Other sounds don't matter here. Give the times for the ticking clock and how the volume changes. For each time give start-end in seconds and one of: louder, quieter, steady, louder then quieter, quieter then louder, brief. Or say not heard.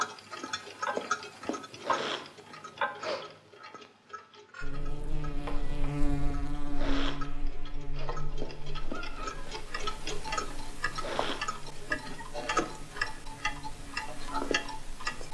0.0-15.2 quieter then louder.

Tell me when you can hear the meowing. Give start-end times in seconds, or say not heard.
4.7-5.9, 8.9-9.6.